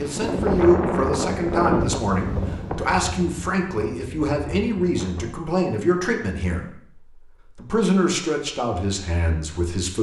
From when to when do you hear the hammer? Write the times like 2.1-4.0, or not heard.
not heard.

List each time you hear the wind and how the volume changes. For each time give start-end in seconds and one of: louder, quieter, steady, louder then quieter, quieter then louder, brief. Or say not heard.
0.0-5.5 quieter.